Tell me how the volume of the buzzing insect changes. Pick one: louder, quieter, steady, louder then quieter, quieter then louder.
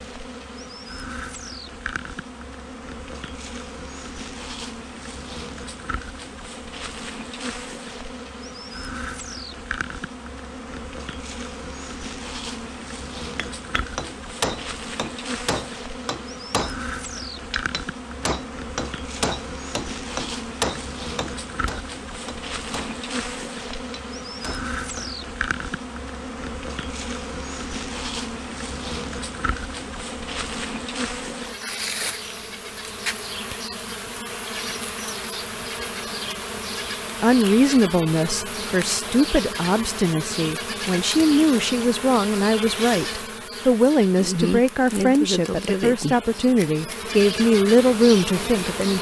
louder.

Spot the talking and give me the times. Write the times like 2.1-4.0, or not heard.
37.2-48.9.